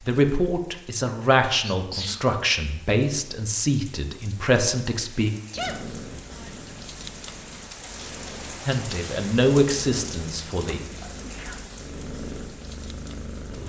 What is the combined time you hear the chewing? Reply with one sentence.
The chewing can't be heard in this clip.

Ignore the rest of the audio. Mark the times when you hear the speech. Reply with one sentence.
You can hear the speech from 0.1 to 5.3 s and from 8.7 to 10.8 s.